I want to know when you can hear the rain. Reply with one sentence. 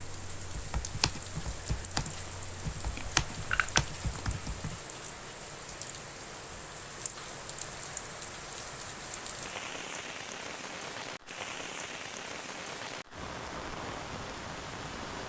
The rain can be heard from 0.0 to 15.2 s.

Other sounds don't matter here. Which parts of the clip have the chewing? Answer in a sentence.
You can hear the chewing from 3.0 to 4.3 s.